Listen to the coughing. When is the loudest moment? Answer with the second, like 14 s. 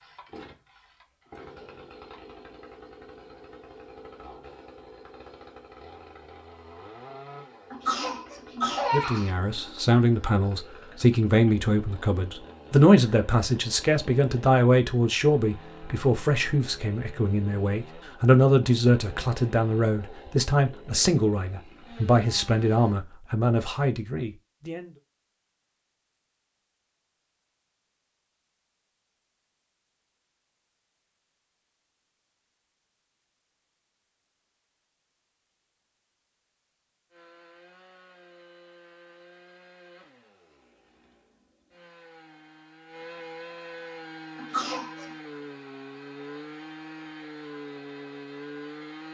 9 s.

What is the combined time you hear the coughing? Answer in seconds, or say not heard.
2 s.